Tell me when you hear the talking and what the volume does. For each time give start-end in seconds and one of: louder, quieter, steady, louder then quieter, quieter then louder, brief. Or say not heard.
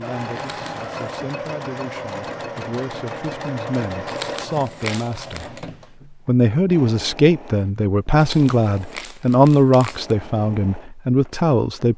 0.0-11.9 louder.